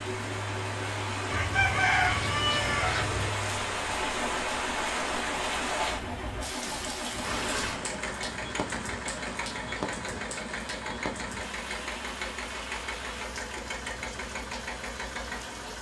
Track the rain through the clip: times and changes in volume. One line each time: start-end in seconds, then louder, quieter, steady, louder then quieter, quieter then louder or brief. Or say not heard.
0.0-15.7 quieter.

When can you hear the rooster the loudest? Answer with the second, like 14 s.
2 s.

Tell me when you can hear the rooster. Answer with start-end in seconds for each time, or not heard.
1.3-3.3.